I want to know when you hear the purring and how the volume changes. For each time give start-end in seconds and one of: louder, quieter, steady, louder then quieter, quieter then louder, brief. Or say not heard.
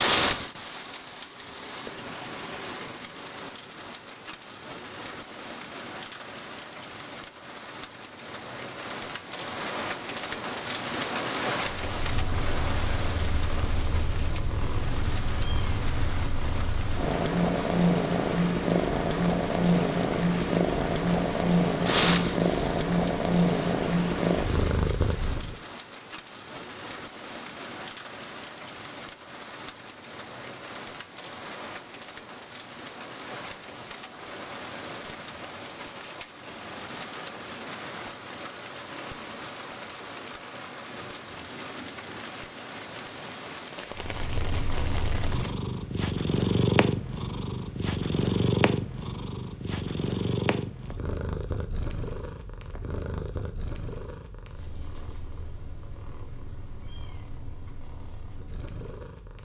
11.8-25.6 louder
43.9-59.3 quieter.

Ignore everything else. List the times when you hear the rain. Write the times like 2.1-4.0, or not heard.
0.0-45.5.